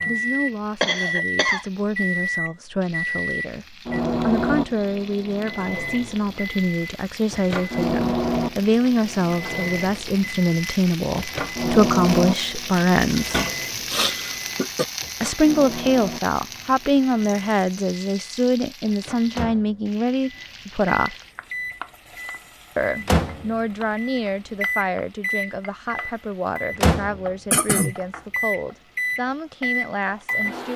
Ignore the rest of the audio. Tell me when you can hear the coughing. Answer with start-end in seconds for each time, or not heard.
0.8-1.6, 13.3-14.8, 27.5-27.9.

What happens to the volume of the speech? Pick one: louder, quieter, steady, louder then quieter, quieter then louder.
louder then quieter.